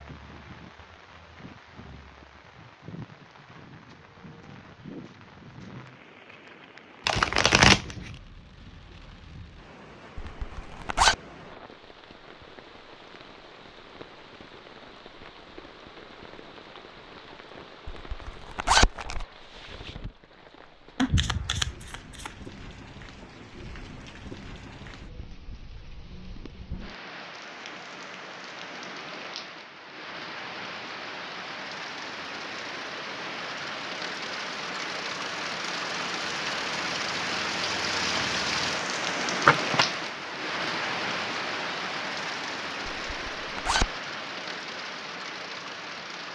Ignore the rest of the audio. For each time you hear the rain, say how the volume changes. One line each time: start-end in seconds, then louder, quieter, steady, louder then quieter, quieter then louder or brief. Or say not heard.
0.0-46.3 louder.